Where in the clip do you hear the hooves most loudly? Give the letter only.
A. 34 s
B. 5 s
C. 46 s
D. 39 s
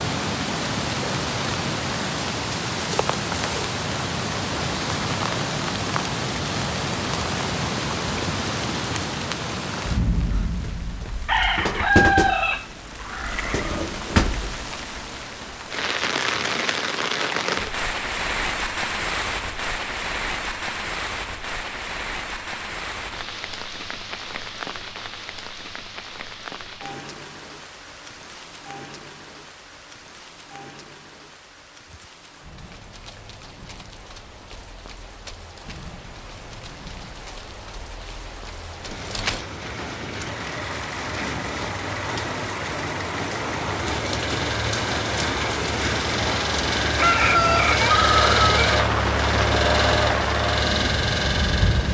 D.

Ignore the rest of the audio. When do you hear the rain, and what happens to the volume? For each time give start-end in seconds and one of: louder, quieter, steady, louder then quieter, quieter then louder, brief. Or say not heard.
0.0-51.8 quieter then louder.